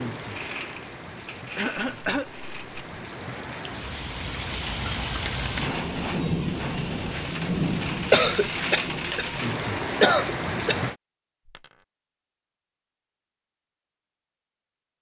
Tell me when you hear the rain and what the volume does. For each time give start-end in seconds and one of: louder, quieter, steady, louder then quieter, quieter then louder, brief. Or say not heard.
0.0-10.9 louder.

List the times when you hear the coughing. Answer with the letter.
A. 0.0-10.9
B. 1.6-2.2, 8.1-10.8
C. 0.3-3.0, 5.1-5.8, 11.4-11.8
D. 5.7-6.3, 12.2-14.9
B.